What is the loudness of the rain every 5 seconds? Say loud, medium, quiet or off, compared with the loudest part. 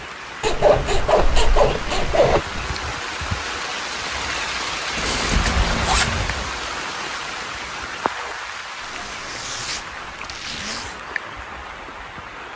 loud, loud, medium.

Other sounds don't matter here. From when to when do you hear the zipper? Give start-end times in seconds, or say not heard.
0.4-2.6, 5.0-6.3, 8.8-11.0.